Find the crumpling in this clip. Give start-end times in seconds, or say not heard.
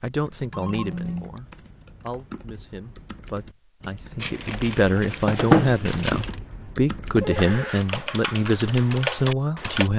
4.2-6.3.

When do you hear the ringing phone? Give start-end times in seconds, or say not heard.
0.5-1.4, 7.2-7.8.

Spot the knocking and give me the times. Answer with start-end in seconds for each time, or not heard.
not heard.